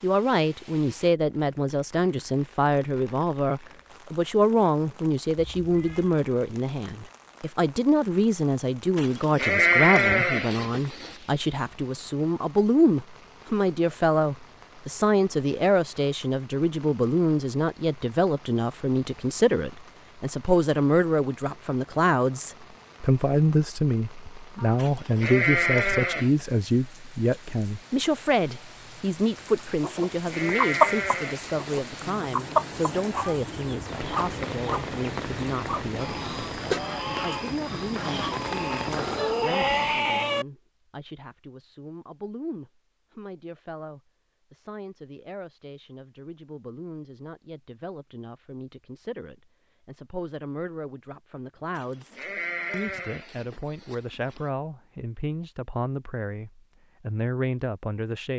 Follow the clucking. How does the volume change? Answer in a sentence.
The volume of the clucking goes down.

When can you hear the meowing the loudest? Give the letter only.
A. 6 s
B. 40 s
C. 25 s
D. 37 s
B.